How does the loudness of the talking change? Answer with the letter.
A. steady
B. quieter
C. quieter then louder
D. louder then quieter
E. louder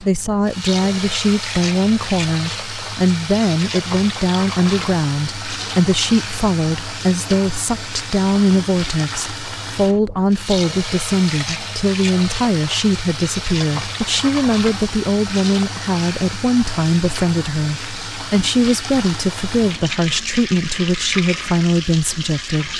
A.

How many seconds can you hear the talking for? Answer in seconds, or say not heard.
23 s.